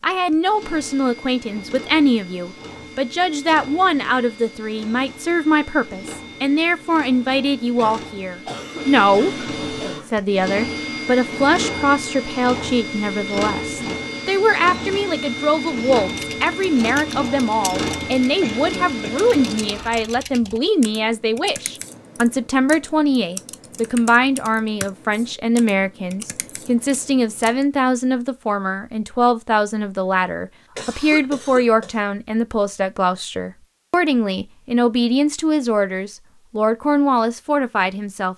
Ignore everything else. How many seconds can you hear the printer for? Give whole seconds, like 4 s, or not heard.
20 s.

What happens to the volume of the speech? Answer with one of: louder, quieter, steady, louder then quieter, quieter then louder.
steady.